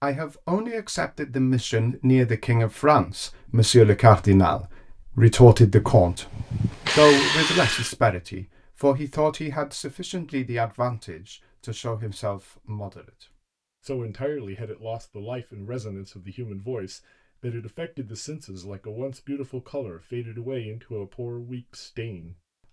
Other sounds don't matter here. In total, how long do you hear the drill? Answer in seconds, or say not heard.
2 s.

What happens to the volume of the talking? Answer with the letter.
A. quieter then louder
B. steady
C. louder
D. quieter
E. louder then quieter
D.